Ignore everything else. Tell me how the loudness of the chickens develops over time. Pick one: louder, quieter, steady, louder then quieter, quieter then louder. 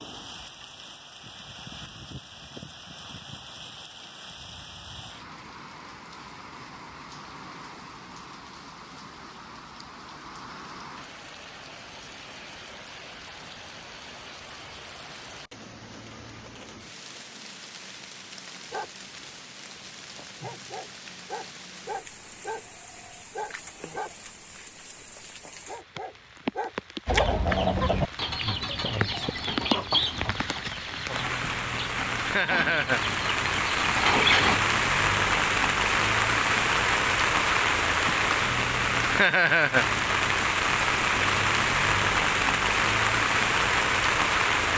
quieter then louder.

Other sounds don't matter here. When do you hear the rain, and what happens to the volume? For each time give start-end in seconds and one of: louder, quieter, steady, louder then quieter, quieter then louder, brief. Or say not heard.
0.0-44.7 louder.